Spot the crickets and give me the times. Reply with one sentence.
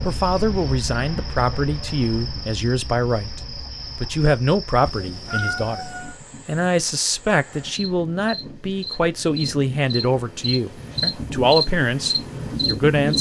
You can hear the crickets from 0.0 to 13.1 s.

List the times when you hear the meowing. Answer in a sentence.
You can hear the meowing from 4.8 to 6.2 s.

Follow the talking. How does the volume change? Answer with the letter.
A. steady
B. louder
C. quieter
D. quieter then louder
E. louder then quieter
A.